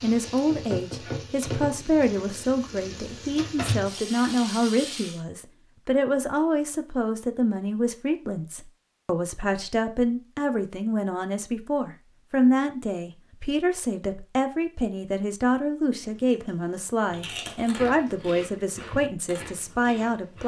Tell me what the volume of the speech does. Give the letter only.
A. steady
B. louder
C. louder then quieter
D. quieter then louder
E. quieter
A.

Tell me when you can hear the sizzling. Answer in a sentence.
The sizzling can be heard from 0.0 to 5.2 s.